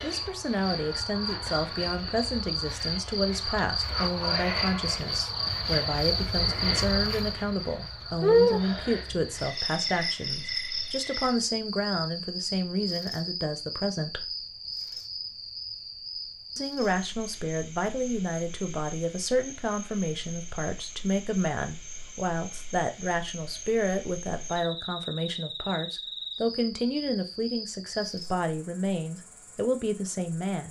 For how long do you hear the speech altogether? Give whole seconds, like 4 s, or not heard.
28 s.